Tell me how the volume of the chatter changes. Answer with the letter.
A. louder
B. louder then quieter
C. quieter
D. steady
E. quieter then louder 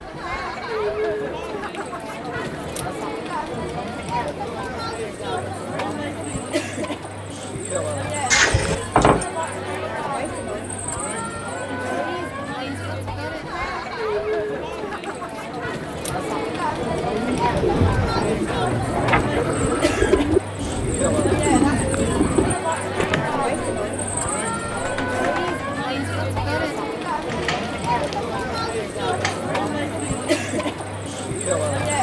D.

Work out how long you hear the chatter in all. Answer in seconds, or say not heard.
32 s.